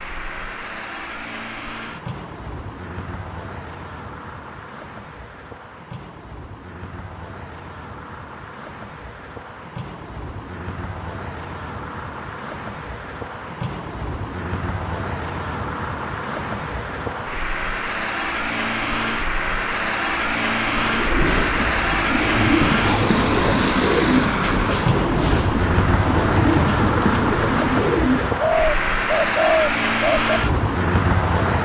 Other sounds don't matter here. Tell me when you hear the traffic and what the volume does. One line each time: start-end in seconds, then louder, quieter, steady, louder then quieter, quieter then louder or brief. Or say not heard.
0.0-31.5 louder.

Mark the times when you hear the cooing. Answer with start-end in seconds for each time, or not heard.
20.8-30.4.